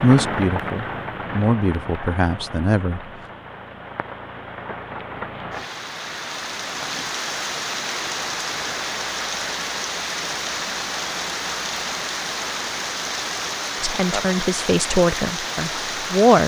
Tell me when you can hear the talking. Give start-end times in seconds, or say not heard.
0.0-3.0, 13.8-16.4.